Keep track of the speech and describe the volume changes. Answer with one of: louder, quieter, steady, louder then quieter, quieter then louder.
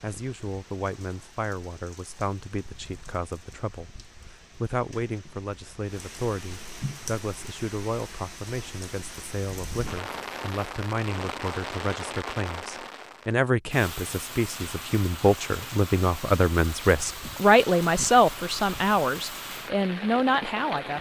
louder.